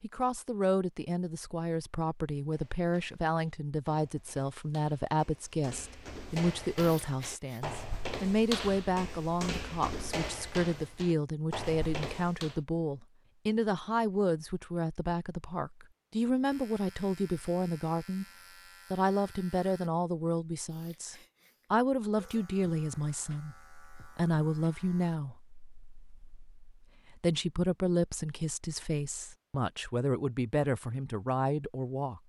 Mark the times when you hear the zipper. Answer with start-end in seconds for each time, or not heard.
not heard.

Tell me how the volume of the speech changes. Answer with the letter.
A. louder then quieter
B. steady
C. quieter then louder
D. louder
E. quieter
B.